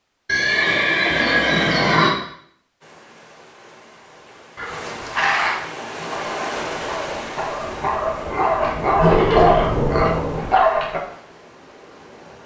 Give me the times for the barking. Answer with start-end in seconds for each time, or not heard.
6.1-11.0.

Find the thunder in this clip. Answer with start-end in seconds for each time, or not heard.
6.7-10.6.